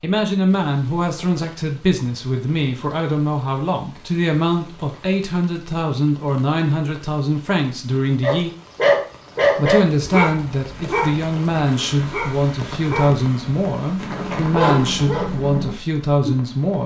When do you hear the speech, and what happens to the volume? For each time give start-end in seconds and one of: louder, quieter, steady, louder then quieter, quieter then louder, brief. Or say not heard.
0.0-8.5 steady
9.6-16.8 steady.